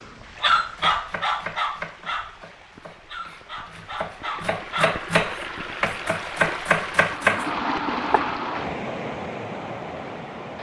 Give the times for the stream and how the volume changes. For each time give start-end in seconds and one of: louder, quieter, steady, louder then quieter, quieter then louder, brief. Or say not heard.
0.0-10.5 louder.